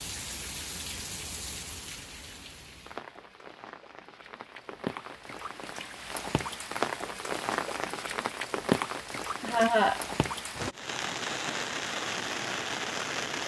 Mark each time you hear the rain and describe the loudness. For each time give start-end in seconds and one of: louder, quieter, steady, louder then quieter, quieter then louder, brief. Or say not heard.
0.0-13.4 louder.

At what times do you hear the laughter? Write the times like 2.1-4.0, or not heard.
9.4-10.0.